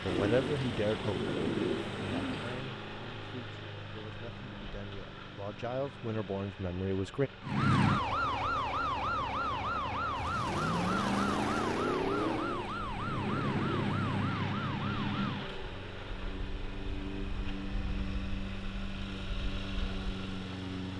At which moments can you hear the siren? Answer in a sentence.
The siren can be heard from 7.4 to 15.6 s.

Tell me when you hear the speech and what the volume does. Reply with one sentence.
You can hear the speech from 0.0 to 7.3 s, getting quieter then louder.